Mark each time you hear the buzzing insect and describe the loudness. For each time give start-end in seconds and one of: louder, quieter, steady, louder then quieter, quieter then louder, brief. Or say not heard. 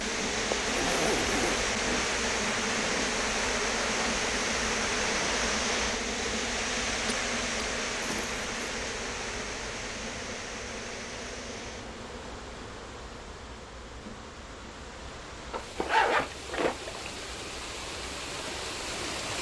0.0-19.1 quieter.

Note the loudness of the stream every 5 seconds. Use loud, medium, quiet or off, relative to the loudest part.
loud, loud, quiet, medium.